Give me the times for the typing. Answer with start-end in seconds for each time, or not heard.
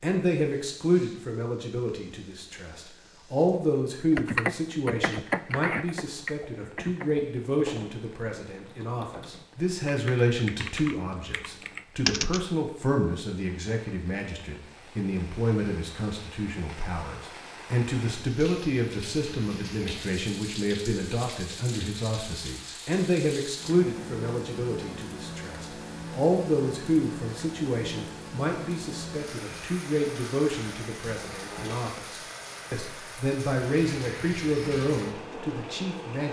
4.2-12.4.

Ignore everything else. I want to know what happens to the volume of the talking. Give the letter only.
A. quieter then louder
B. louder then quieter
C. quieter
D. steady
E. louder
D.